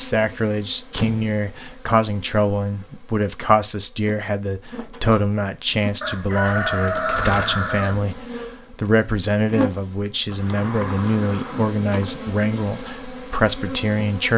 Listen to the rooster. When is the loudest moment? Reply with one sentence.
The volume of the rooster peaks at 7 seconds.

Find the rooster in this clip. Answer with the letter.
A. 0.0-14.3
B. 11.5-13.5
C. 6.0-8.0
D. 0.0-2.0
C.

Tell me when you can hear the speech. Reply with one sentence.
The speech can be heard from 0.0 to 14.3 s.